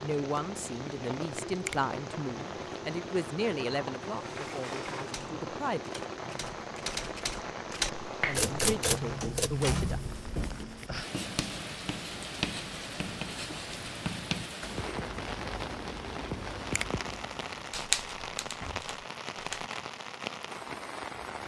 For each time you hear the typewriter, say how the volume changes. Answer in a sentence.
You can hear the typewriter from 5.0 to 9.5 s, getting louder; and briefly from 17.7 to 19.7 s.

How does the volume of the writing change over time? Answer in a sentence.
The volume of the writing stays about the same.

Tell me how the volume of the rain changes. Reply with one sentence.
The loudness of the rain stays about the same.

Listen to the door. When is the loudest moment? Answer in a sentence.
The loudest moment of the door is at 10 seconds.